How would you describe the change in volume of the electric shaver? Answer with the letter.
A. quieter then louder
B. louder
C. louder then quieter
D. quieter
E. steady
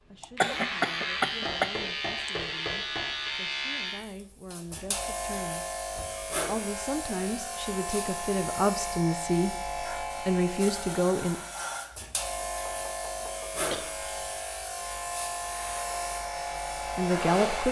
E.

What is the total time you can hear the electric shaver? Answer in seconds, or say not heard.
17 s.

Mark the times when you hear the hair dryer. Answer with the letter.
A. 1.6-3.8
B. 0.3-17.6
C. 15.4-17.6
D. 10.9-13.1
C.